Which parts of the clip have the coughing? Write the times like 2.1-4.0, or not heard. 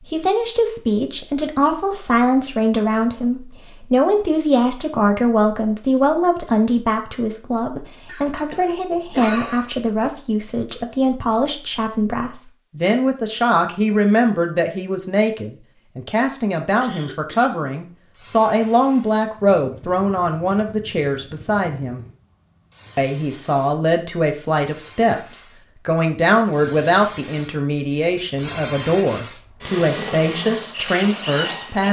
8.1-10.1, 16.8-17.6.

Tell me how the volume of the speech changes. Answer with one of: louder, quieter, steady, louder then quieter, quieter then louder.
steady.